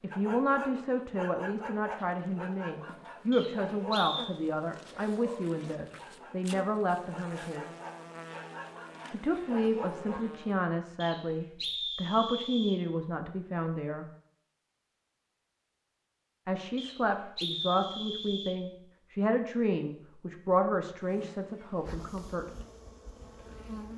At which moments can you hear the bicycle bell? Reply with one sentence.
You can't hear the bicycle bell here.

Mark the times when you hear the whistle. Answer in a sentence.
The whistle can be heard from 3.3 to 4.3 s, from 11.0 to 12.8 s and from 16.8 to 18.6 s.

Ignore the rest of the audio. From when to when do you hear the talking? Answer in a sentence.
The talking can be heard from 0.0 to 7.7 s, from 9.1 to 14.1 s and from 16.4 to 22.4 s.